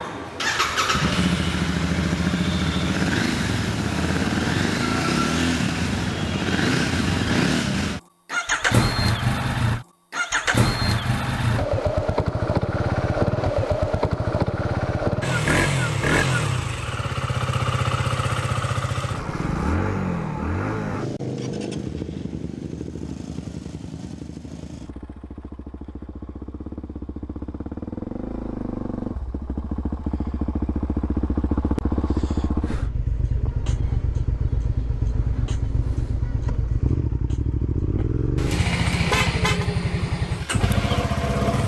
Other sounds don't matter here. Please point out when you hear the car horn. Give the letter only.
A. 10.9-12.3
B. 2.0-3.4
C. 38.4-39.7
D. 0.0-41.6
C.